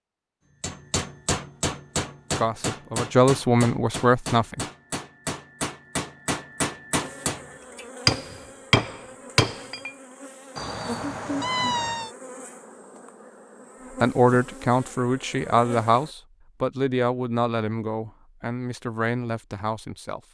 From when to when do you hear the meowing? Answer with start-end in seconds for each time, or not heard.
10.6-12.1.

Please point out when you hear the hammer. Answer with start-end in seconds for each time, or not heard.
0.6-9.9.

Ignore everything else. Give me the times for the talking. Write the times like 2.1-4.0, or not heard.
2.4-4.7, 14.0-20.2.